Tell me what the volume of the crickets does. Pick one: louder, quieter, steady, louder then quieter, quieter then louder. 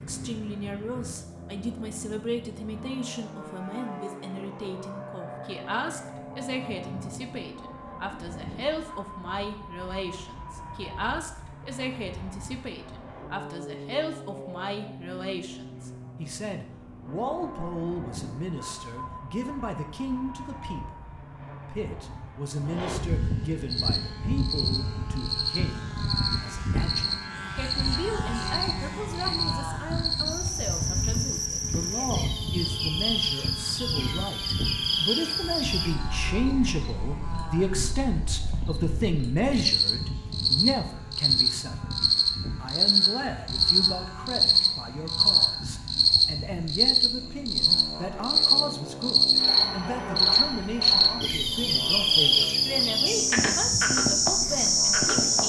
louder.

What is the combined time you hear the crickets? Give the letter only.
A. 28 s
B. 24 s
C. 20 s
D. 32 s
D.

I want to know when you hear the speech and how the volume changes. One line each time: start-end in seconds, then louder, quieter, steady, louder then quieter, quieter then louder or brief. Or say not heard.
0.0-42.0 louder
42.6-55.4 steady.